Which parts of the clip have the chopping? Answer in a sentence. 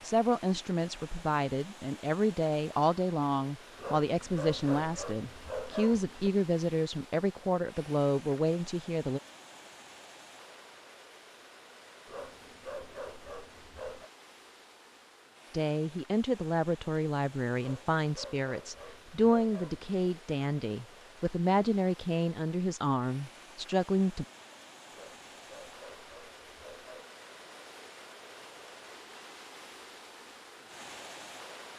You can't hear the chopping here.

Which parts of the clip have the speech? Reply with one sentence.
The speech can be heard from 0.0 to 9.2 s and from 15.5 to 24.2 s.